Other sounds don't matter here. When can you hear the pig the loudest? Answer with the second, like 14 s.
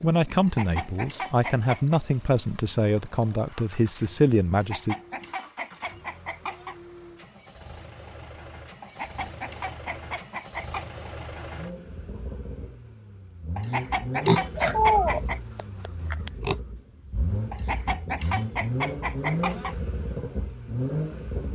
15 s.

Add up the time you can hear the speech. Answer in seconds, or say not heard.
5 s.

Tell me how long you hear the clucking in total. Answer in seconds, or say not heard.
10 s.